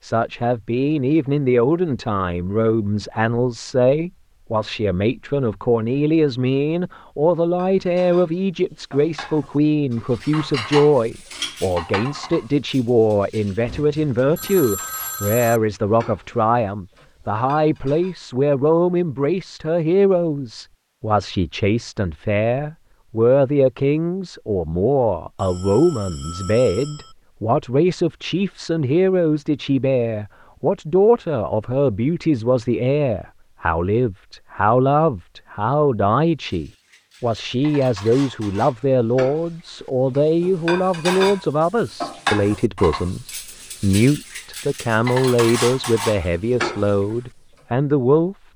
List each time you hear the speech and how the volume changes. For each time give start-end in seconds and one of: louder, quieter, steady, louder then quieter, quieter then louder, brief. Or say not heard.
0.0-48.4 steady.